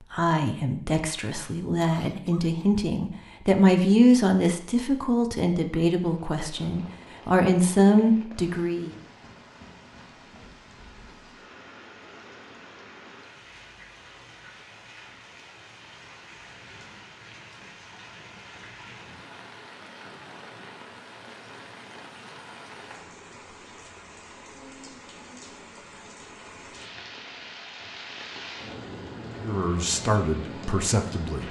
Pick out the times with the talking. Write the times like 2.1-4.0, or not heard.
0.1-8.9, 29.4-31.4.